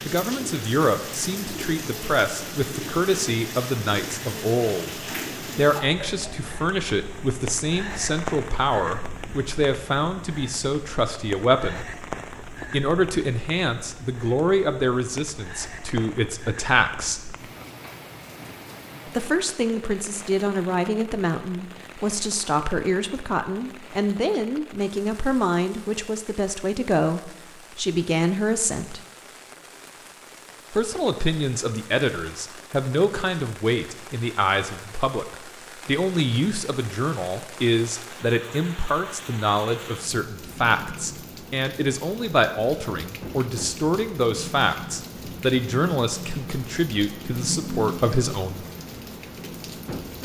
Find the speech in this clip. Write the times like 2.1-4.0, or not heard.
0.0-11.8, 12.6-17.2, 19.1-29.0, 30.7-48.6.